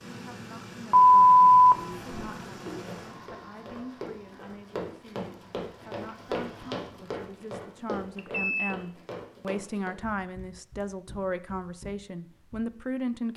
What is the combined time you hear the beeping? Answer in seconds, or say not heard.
2 s.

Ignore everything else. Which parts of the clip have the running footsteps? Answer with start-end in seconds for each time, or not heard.
2.7-12.6.